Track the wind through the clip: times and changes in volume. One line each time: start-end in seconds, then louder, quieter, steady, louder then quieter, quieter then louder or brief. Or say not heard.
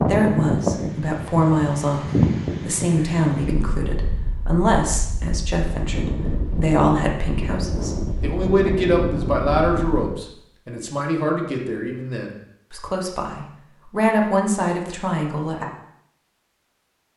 0.0-10.2 quieter then louder.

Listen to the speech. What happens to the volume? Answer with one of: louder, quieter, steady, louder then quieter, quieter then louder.
steady.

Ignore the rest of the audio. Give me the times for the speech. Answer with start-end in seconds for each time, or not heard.
0.0-15.7.